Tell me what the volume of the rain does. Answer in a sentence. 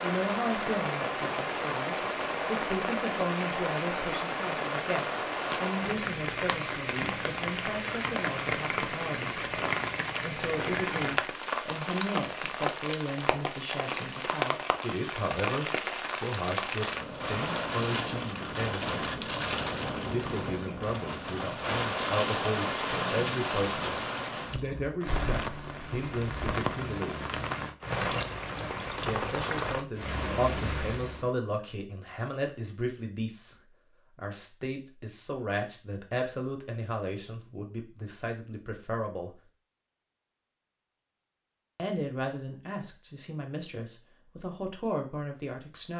The volume of the rain stays about the same.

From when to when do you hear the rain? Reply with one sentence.
The rain can be heard from 0.0 to 31.3 s.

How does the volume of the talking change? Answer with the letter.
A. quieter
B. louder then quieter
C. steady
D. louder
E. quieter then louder
C.